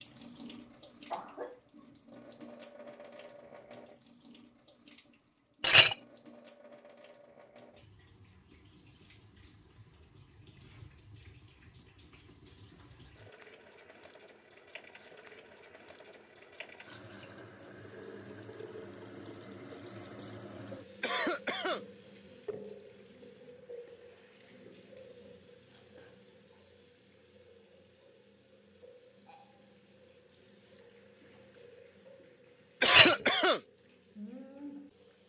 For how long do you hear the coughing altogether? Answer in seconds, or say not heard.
2 s.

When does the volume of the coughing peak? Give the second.
33 s.